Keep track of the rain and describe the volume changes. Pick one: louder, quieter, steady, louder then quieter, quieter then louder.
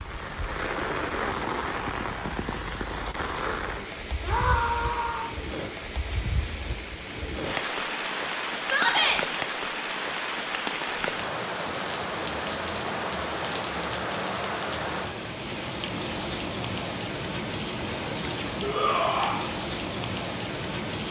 steady.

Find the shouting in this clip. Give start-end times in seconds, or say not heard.
4.2-5.3, 8.6-9.2, 18.6-19.4.